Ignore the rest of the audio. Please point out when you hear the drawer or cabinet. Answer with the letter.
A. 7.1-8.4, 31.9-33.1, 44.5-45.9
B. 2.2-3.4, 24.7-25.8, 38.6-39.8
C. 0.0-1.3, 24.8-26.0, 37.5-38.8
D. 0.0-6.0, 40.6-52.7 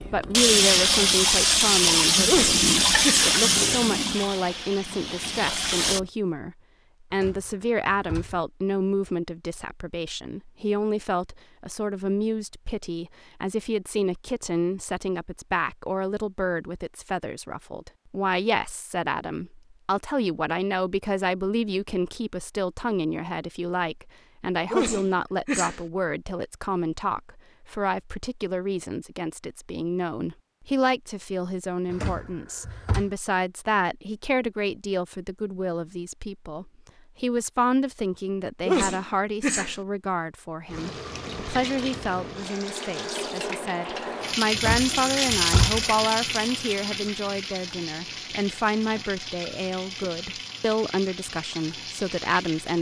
A.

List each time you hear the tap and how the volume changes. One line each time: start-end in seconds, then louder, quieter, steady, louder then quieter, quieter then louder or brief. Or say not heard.
0.0-6.0 quieter
40.6-52.7 louder then quieter.